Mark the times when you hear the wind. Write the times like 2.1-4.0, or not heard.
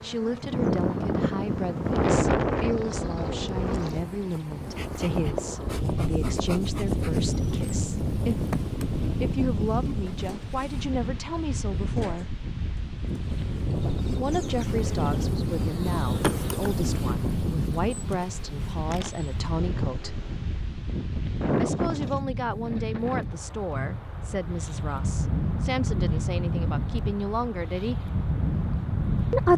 0.0-29.5.